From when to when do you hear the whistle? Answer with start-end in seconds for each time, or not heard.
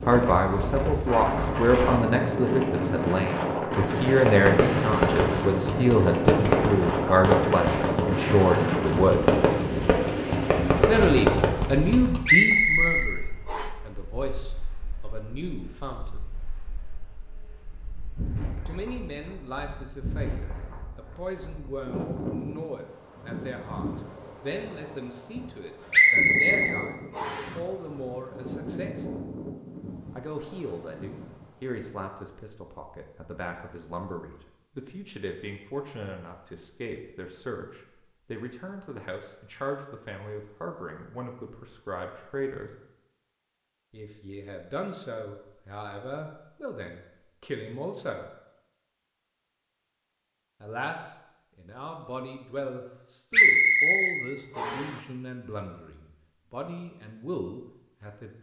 12.2-13.7, 25.9-27.5, 53.3-54.9.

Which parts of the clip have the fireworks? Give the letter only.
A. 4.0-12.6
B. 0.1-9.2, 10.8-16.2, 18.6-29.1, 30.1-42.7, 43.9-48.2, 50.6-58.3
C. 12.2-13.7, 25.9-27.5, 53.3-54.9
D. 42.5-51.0
A.